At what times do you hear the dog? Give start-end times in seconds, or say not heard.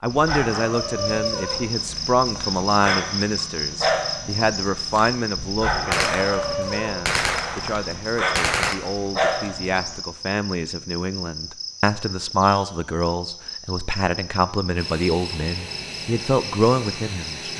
0.1-9.9.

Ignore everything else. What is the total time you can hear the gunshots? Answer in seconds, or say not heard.
3 s.